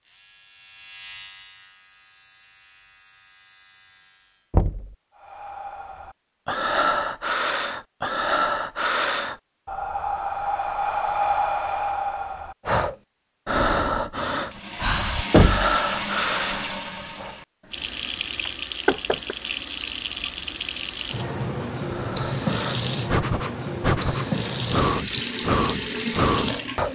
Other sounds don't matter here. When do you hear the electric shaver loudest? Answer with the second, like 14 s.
1 s.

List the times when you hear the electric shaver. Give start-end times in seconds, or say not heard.
0.0-4.5.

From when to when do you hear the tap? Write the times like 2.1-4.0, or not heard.
14.4-26.9.